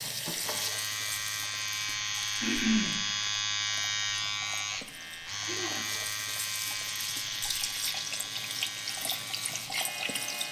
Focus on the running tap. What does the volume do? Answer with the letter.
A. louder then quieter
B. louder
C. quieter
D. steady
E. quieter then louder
E.